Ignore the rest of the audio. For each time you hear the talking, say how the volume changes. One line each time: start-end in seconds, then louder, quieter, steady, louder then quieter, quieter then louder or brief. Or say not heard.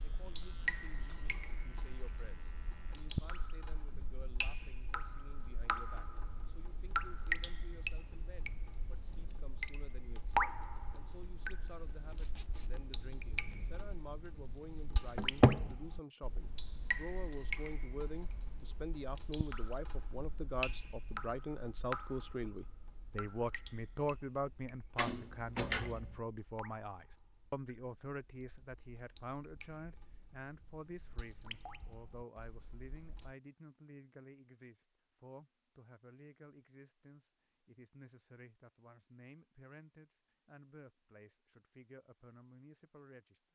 0.0-43.4 louder then quieter.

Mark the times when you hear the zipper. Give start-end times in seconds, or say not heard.
12.1-12.8.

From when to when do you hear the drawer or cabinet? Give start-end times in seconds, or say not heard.
15.2-15.7, 24.9-26.2.